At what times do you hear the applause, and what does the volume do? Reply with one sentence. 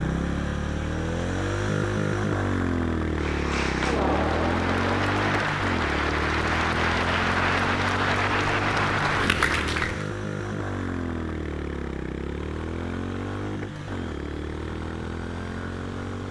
The applause can be heard from 3.1 to 10.1 s, at a steady volume.